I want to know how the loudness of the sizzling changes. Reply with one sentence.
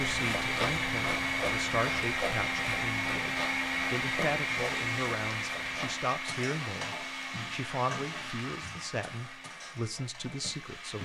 The volume of the sizzling goes down.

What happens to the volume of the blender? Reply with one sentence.
The volume of the blender goes down.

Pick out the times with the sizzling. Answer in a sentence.
The sizzling can be heard from 4.5 to 10.9 s.